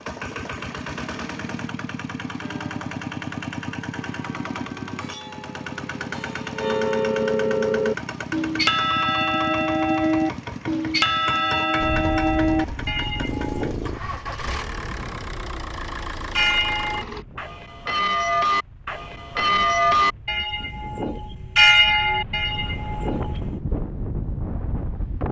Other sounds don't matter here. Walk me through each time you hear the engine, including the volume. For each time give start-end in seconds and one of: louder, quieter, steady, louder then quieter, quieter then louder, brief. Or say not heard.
0.0-17.2 steady.